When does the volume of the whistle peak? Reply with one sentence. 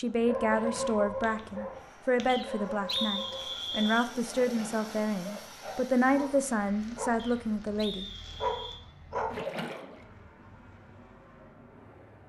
The volume of the whistle peaks at 3 seconds.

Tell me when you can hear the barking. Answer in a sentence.
You can hear the barking from 0.2 to 9.3 s.